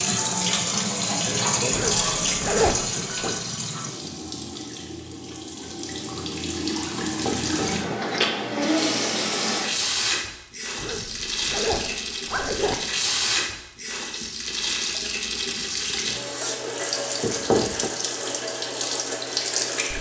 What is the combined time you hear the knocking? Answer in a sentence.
You can hear the knocking for 2 seconds altogether.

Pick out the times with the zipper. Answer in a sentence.
The zipper can be heard from 1.7 to 3.3 s and from 10.8 to 12.8 s.